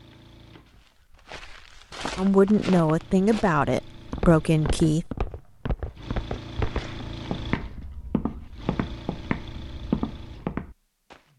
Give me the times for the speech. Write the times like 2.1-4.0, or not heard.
2.1-5.0.